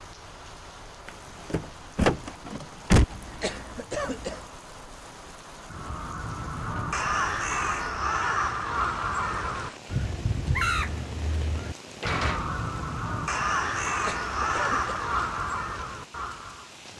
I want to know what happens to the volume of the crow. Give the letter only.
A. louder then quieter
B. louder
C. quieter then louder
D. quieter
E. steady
E.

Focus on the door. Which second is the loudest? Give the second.
3 s.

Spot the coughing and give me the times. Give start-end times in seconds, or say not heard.
3.1-4.5, 13.8-14.9.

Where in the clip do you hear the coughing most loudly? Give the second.
4 s.